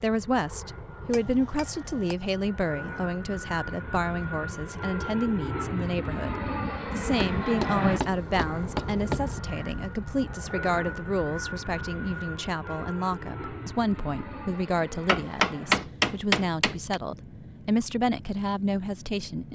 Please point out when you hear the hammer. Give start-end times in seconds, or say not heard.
1.1-2.1, 7.4-9.4, 15.1-16.9.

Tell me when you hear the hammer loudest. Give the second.
16 s.